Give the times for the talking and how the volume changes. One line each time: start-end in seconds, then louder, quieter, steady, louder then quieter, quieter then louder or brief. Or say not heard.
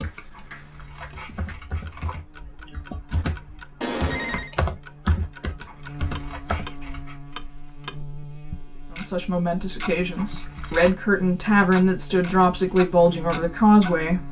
8.9-14.2 louder.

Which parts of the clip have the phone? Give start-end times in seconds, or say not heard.
3.8-4.5.